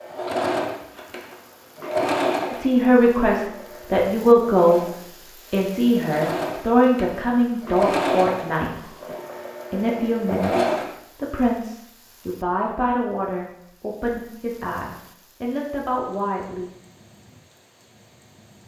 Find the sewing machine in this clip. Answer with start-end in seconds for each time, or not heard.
0.0-10.9.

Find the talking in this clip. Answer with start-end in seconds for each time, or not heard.
2.5-4.8, 5.5-8.9, 9.7-16.7.